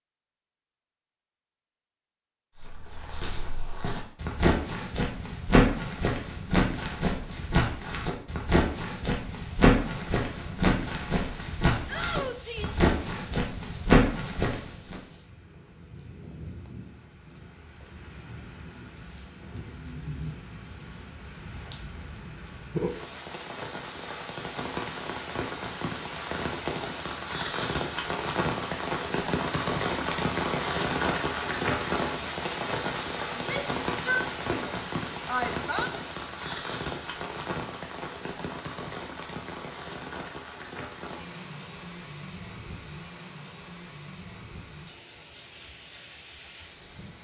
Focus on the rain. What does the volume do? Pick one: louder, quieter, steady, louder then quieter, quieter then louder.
louder then quieter.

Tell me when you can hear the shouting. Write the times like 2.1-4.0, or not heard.
11.8-12.8, 33.3-35.9.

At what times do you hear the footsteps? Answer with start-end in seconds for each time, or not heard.
2.5-15.0.